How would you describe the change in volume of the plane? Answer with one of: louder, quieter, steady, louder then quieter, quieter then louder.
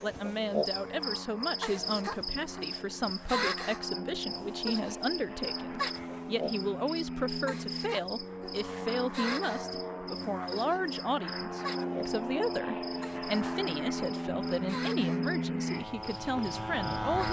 louder.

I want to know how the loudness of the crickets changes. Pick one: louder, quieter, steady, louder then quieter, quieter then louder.
quieter.